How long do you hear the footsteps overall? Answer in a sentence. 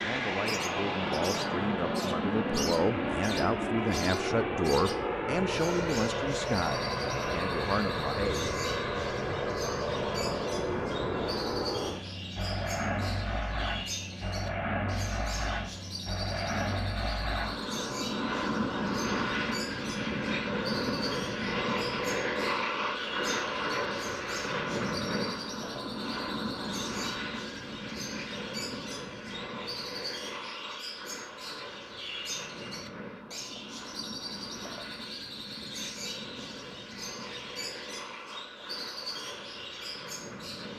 You can't hear the footsteps here.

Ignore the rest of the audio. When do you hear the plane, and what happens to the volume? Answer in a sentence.
You can hear the plane from 0.0 to 40.7 s, getting quieter.